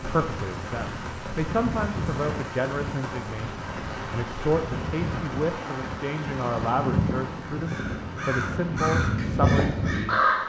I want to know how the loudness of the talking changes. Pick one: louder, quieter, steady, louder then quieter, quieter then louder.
steady.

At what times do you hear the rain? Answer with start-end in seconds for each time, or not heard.
0.0-10.4.